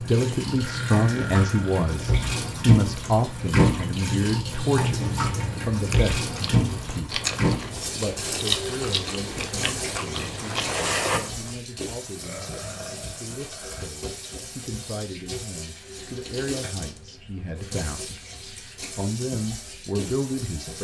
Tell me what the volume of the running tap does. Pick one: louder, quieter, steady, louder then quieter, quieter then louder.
quieter.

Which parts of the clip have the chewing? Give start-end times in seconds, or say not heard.
5.7-11.6.